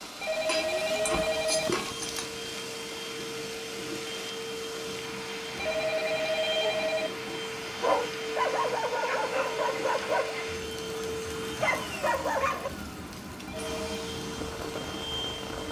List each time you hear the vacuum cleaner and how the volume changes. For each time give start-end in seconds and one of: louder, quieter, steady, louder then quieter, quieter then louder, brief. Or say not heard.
0.1-15.6 steady.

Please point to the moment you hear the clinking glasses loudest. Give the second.
2 s.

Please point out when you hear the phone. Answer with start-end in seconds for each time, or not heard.
0.2-1.7, 5.5-7.1, 13.4-13.8.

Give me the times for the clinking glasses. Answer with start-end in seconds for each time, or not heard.
0.5-2.2.